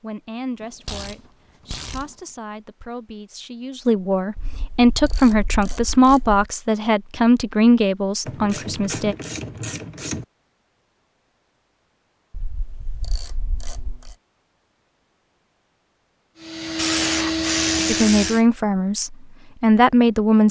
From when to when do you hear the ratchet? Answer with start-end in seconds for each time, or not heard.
0.6-2.1, 4.3-6.5, 8.2-10.2, 12.3-14.2, 16.8-18.4.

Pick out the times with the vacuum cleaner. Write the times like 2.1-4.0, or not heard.
16.4-18.4.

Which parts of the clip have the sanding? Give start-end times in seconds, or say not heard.
not heard.